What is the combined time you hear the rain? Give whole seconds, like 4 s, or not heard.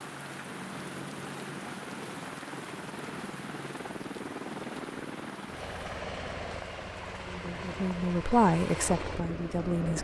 10 s.